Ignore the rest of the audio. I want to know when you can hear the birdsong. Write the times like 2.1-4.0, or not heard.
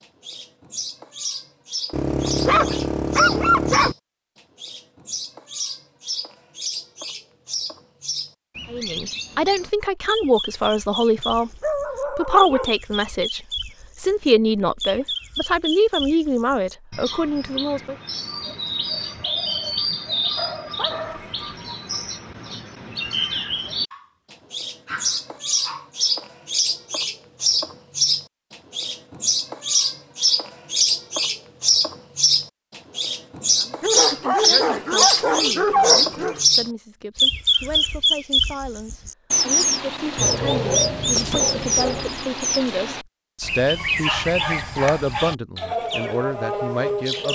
0.0-47.3.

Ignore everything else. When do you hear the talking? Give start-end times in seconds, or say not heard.
8.7-17.9, 33.5-47.3.